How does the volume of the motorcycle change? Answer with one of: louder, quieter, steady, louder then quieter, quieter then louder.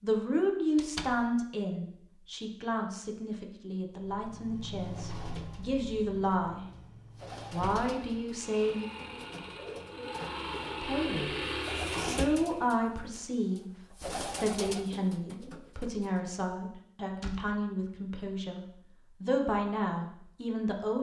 quieter then louder.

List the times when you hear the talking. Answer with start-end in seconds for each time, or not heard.
0.0-6.6, 7.5-8.8, 10.8-20.9.